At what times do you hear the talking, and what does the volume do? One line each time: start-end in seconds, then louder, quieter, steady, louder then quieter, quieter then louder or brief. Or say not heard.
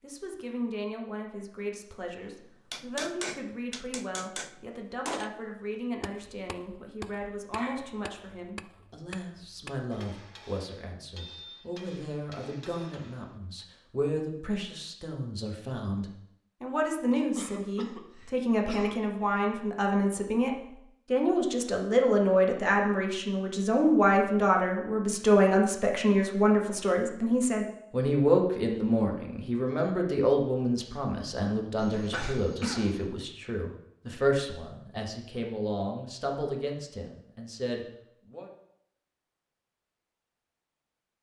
0.0-20.5 louder
21.1-38.5 quieter.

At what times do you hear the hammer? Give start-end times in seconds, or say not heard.
2.7-5.4, 6.0-13.7.